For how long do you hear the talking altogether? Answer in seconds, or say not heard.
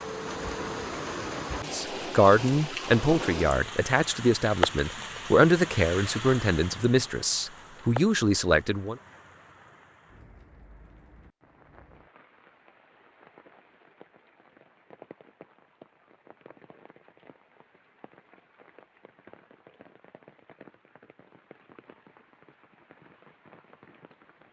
7 s.